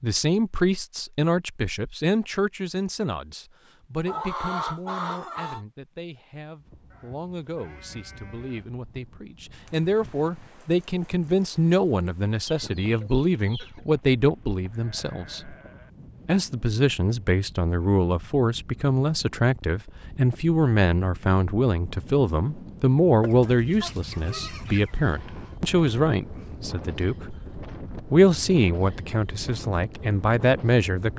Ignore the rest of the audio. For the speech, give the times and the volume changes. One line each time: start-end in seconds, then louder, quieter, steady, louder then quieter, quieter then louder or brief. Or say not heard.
0.0-15.6 quieter then louder
16.2-31.1 steady.